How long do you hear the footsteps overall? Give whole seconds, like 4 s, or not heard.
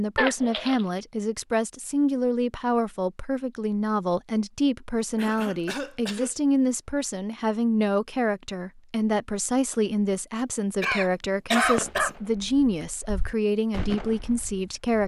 not heard.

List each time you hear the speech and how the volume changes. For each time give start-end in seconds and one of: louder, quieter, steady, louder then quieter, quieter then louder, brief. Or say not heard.
0.0-15.0 steady.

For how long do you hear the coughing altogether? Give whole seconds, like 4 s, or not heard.
3 s.